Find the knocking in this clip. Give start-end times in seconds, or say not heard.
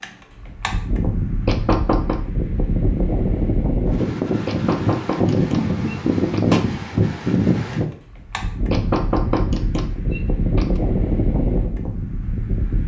1.4-2.2, 4.5-6.7, 8.7-10.8.